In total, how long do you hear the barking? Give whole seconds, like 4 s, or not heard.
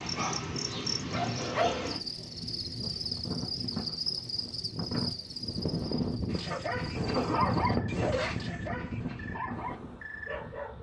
6 s.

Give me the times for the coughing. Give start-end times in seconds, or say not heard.
1.1-2.0, 6.5-8.3.